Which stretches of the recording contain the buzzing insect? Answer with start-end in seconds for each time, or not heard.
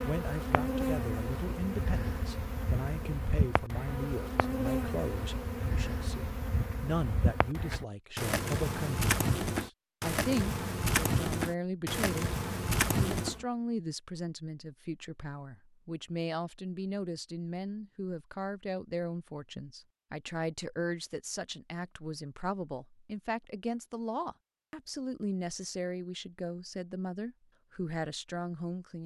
0.0-13.4.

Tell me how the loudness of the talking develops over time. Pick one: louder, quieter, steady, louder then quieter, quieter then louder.
steady.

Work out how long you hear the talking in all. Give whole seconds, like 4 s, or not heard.
29 s.